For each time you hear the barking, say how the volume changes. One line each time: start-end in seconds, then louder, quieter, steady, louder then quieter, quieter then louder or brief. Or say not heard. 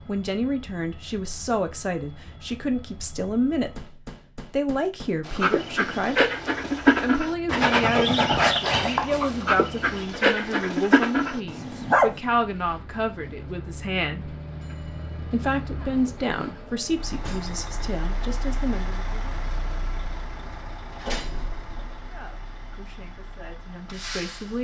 5.2-12.2 steady.